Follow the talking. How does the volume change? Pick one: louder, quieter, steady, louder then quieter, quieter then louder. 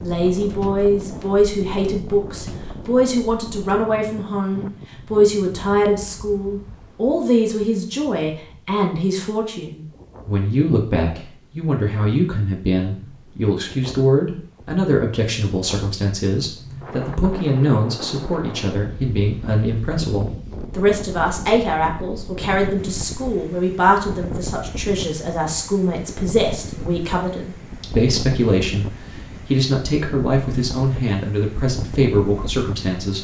steady.